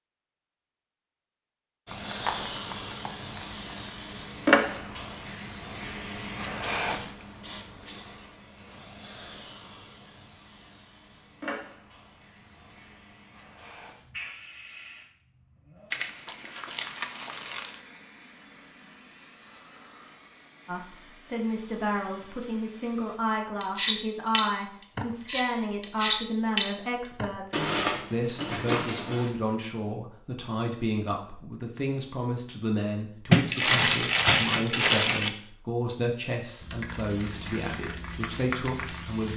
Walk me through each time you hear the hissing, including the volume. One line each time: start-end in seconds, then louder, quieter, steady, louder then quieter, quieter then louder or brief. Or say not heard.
1.9-23.2 quieter
36.6-39.3 brief.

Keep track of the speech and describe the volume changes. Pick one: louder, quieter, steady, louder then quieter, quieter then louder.
steady.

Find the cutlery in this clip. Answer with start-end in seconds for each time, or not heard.
23.6-29.3.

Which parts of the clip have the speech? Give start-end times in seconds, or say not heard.
20.6-39.3.